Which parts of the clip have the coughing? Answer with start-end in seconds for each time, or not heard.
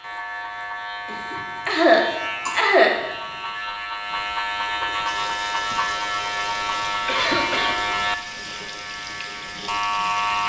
1.1-3.0, 7.0-7.8.